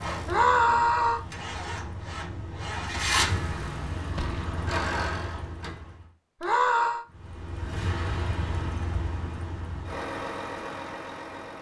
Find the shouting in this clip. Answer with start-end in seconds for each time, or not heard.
0.2-1.2, 6.4-7.0.